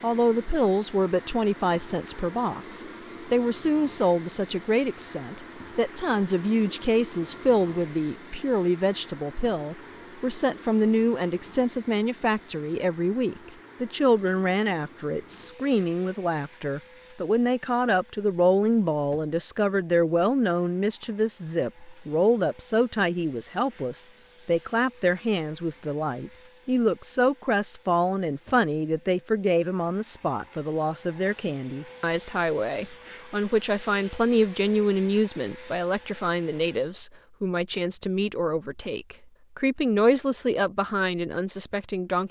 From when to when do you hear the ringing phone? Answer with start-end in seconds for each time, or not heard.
not heard.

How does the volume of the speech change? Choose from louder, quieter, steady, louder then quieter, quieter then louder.
steady.